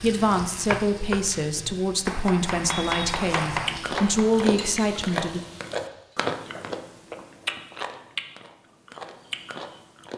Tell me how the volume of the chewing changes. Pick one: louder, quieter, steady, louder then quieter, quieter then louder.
quieter.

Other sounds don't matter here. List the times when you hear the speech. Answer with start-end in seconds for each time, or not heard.
0.0-5.4.